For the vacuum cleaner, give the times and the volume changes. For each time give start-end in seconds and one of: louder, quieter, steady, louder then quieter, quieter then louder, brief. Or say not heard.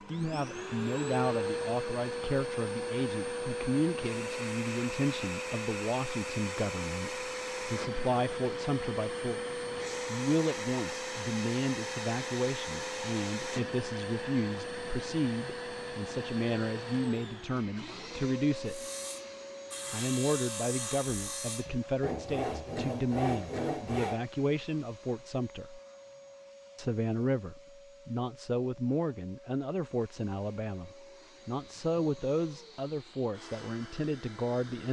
0.0-34.8 quieter.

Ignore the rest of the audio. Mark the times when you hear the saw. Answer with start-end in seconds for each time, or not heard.
18.6-24.2.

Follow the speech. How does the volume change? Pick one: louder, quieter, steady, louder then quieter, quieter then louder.
steady.